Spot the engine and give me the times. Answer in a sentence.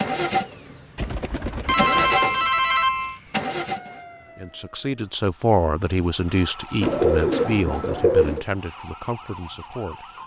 You can hear the engine from 0.0 to 4.0 s.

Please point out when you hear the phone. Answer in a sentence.
The phone can be heard from 1.6 to 3.2 s and from 6.2 to 7.9 s.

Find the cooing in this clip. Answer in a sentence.
The cooing can be heard from 0.9 to 2.5 s and from 6.8 to 8.4 s.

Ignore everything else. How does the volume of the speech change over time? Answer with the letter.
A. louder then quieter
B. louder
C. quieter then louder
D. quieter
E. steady
D.